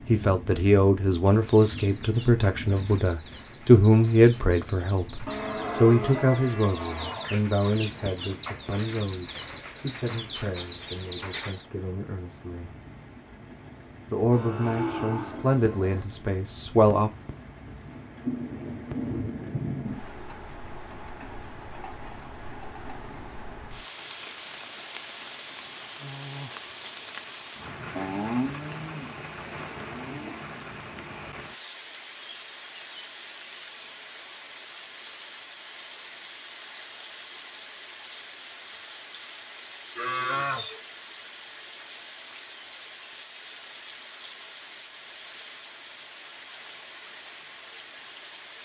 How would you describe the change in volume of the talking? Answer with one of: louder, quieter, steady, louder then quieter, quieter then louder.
quieter then louder.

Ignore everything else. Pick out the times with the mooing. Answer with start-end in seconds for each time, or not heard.
5.2-7.3, 14.3-16.1, 27.9-30.4, 40.0-40.8.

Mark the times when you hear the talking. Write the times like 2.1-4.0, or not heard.
0.1-12.8, 14.1-17.1.